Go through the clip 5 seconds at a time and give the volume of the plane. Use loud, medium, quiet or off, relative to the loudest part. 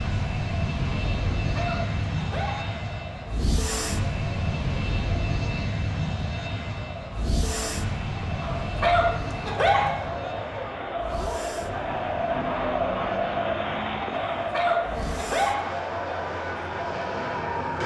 loud, loud, quiet, loud.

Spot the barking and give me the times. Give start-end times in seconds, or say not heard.
1.4-2.8, 8.4-10.1, 14.3-15.8.